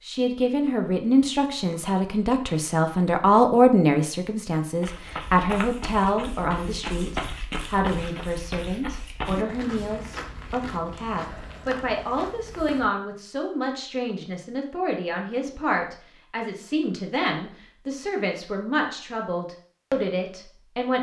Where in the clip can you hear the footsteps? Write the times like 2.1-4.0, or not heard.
4.8-12.9.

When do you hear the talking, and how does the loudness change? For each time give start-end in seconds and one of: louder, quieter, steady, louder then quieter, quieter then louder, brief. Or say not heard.
0.0-20.9 quieter.